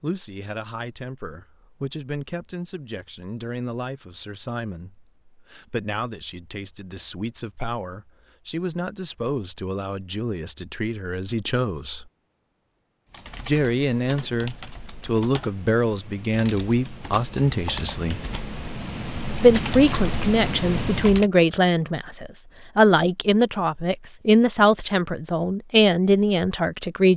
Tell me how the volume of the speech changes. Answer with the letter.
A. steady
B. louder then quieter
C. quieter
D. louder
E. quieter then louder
D.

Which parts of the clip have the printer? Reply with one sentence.
The printer can't be heard in this clip.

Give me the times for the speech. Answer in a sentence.
The speech can be heard from 0.0 to 12.1 s, from 13.4 to 18.2 s and from 19.4 to 27.1 s.